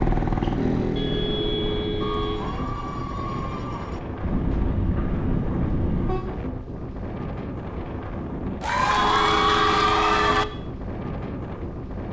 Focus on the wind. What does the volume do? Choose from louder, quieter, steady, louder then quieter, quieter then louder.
steady.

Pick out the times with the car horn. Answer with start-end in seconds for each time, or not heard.
0.9-2.5, 4.2-6.2, 8.9-10.4.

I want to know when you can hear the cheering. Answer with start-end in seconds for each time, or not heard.
2.0-4.0, 8.6-10.4.